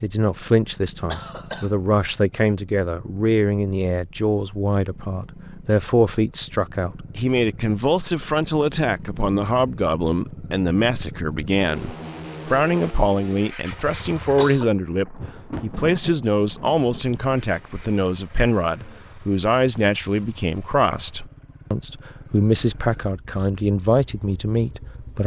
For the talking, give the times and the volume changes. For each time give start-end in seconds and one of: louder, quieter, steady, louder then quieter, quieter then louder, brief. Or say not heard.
0.0-25.2 steady.